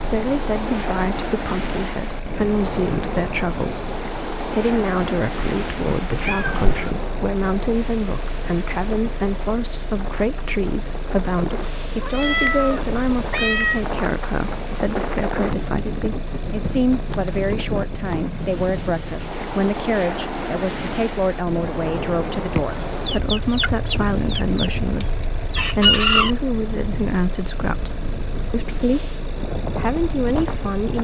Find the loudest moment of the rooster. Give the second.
26 s.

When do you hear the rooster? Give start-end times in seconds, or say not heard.
23.1-26.4.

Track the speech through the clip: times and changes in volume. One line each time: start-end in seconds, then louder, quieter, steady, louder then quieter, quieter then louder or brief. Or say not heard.
0.0-30.9 steady.